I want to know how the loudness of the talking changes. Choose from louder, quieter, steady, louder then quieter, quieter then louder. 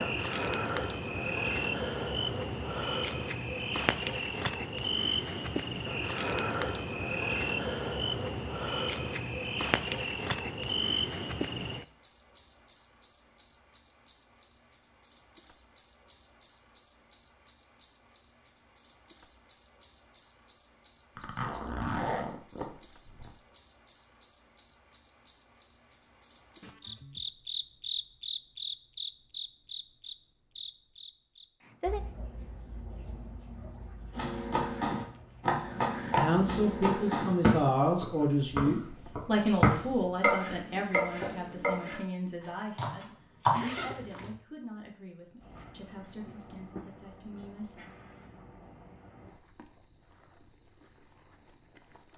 quieter.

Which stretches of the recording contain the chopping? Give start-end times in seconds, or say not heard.
34.1-43.6.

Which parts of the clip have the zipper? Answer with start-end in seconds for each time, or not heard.
21.1-23.4, 43.5-44.4.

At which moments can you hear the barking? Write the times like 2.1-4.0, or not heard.
not heard.